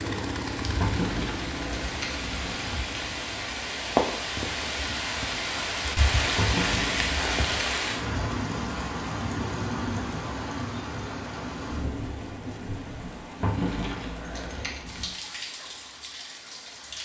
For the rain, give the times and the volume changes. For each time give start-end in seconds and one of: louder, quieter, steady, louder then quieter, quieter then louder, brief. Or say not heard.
0.0-16.9 louder then quieter.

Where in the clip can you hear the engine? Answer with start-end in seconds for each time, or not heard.
0.0-3.6.